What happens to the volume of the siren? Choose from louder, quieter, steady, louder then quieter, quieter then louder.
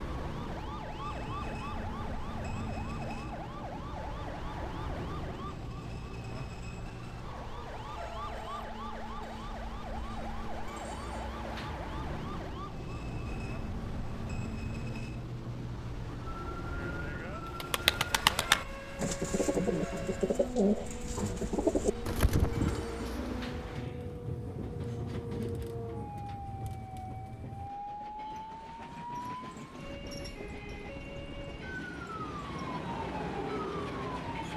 steady.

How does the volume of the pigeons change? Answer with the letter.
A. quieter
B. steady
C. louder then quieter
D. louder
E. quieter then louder
A.